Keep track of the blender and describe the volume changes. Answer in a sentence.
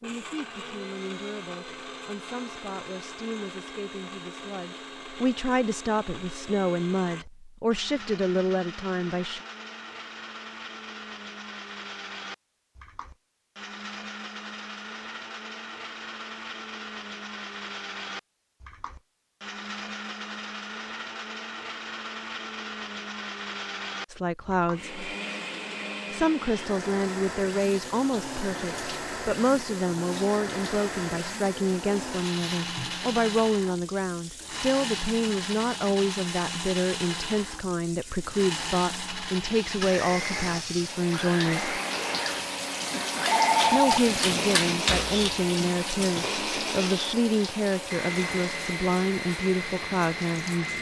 The volume of the blender goes up.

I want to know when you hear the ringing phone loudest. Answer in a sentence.
The volume of the ringing phone peaks at 44 seconds.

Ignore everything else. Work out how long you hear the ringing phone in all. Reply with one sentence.
The ringing phone can be heard for 2 seconds in total.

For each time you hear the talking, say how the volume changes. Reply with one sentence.
The talking can be heard from 0.0 to 9.4 s, getting louder; briefly from 24.1 to 24.9 s; from 26.1 to 41.8 s, at a steady volume; and from 43.7 to 50.7 s, at a steady volume.